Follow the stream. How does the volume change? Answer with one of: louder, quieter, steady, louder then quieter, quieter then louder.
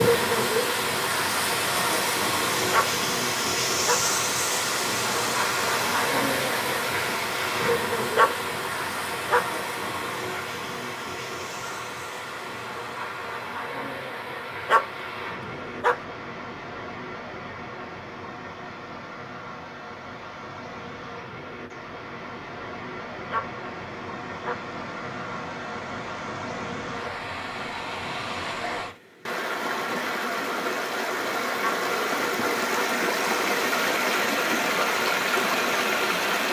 quieter then louder.